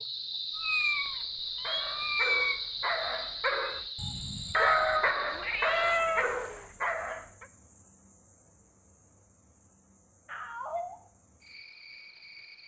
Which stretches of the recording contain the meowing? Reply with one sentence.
The meowing can be heard from 0.5 to 2.6 s, from 4.5 to 6.7 s and from 10.2 to 10.9 s.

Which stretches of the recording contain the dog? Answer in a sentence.
You can hear the dog from 1.6 to 7.5 s.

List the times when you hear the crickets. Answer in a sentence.
The crickets can be heard from 0.0 to 12.6 s.